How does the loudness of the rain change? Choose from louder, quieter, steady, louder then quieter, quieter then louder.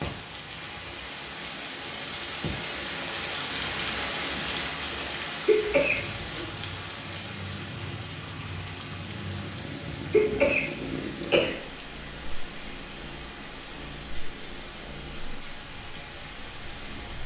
quieter.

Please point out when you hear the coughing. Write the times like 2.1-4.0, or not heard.
5.5-6.5, 10.1-11.6.